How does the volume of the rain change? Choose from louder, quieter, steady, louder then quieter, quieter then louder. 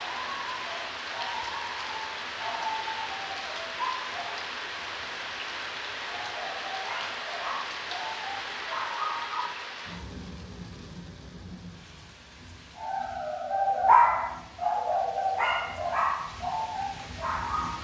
quieter.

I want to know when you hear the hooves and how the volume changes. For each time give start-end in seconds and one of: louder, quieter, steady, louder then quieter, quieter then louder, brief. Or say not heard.
not heard.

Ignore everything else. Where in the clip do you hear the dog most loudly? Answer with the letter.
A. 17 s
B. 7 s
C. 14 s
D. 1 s
C.